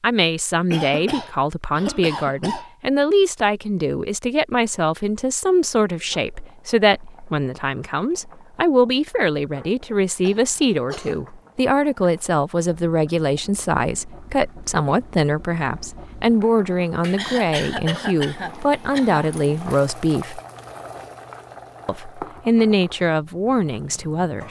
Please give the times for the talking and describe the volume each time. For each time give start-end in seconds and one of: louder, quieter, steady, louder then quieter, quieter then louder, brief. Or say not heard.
0.0-20.4 steady
21.9-24.4 brief.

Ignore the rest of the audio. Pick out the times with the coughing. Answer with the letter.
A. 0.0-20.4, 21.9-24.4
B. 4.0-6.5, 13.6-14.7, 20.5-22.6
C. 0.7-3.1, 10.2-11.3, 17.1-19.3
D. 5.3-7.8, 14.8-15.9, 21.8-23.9
C.